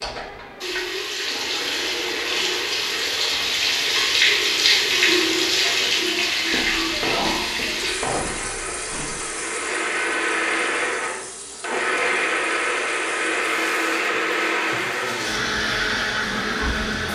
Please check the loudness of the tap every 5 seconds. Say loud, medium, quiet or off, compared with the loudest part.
loud, loud, quiet, quiet.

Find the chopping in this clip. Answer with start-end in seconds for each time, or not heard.
6.5-9.2.